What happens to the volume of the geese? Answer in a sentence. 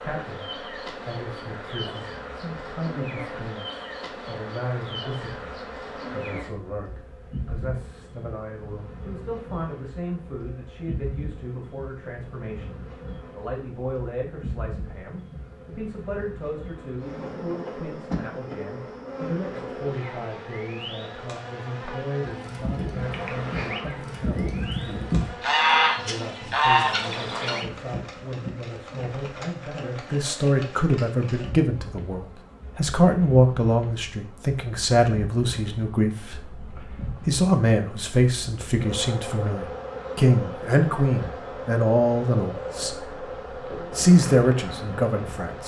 The volume of the geese goes up.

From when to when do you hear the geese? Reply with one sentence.
You can hear the geese from 22.2 to 27.6 s.